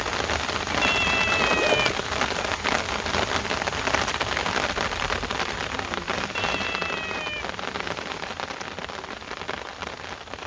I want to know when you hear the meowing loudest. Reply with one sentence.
The loudest moment of the meowing is at 1 second.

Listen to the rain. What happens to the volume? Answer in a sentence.
The volume of the rain goes down.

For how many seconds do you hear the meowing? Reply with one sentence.
The meowing can be heard for 2 seconds in total.